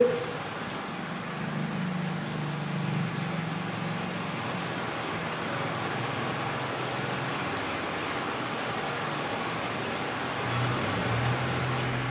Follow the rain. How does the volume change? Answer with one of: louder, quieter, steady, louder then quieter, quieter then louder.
steady.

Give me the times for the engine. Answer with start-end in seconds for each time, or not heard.
10.4-12.0.